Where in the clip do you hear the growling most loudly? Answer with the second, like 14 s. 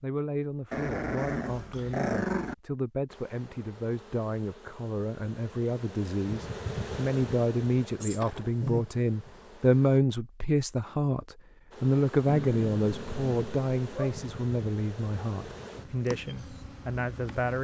2 s.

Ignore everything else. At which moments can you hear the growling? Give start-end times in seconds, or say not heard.
0.7-2.5, 8.0-8.8, 12.2-14.2.